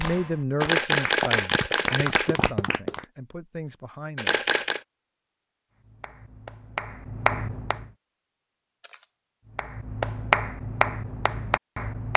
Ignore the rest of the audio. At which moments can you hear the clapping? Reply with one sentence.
You can hear the clapping from 0.0 to 3.0 s, from 5.8 to 7.8 s and from 9.6 to 12.1 s.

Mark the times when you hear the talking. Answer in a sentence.
The talking can be heard from 0.0 to 4.4 s.